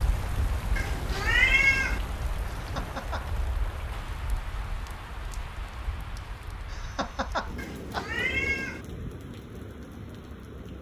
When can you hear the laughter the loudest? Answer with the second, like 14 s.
7 s.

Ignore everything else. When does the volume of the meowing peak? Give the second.
2 s.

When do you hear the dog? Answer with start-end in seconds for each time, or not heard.
not heard.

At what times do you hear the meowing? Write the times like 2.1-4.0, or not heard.
0.8-2.0, 7.5-8.8.